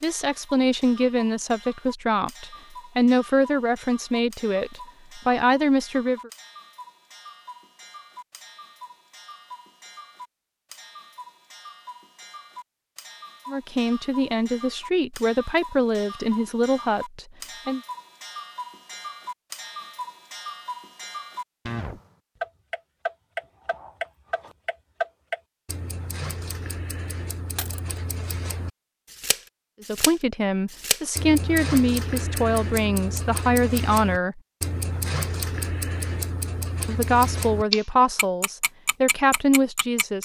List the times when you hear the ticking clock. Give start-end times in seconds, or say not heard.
0.0-40.2.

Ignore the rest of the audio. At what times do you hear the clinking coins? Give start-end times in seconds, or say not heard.
27.6-28.0.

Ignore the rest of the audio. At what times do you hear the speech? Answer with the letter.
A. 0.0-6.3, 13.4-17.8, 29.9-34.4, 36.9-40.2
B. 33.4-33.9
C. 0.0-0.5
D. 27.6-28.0
A.